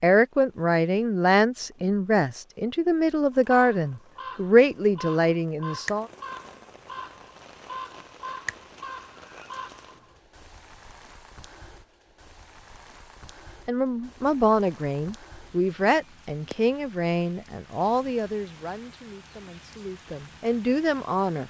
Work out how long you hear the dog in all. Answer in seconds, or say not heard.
not heard.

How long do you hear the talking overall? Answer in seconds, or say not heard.
14 s.